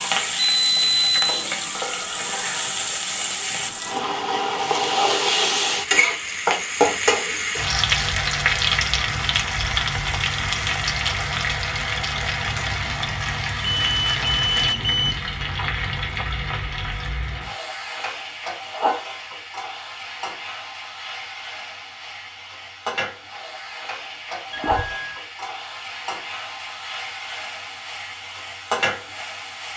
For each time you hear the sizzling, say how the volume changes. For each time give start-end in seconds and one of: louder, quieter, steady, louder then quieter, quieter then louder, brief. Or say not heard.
0.0-29.7 quieter.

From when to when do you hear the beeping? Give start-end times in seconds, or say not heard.
0.4-1.2, 13.6-15.2, 24.5-25.2.